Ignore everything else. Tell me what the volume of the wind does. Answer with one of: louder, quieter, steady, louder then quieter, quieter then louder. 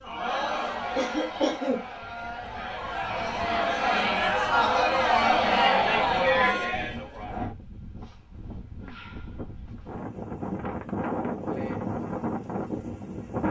louder.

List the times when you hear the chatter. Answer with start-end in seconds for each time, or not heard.
0.0-7.5.